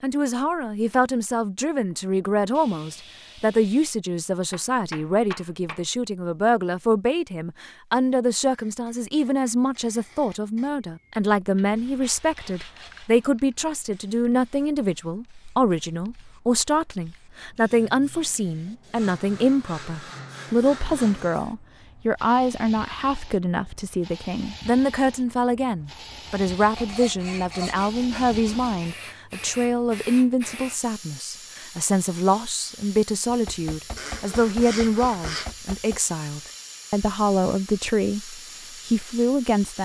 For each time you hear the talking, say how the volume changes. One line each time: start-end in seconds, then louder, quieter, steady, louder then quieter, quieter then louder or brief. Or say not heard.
0.0-39.7 steady.